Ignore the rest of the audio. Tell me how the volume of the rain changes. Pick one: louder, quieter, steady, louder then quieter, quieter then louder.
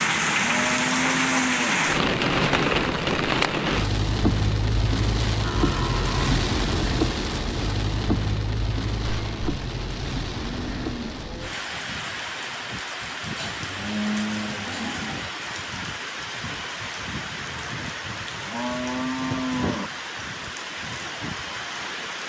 quieter.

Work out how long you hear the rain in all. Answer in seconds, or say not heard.
22 s.